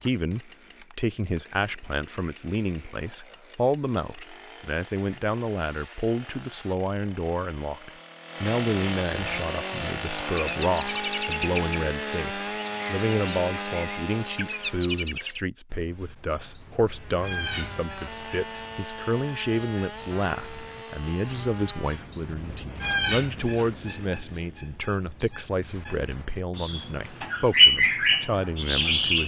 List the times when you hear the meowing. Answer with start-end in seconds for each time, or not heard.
not heard.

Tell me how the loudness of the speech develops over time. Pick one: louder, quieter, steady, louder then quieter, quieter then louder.
steady.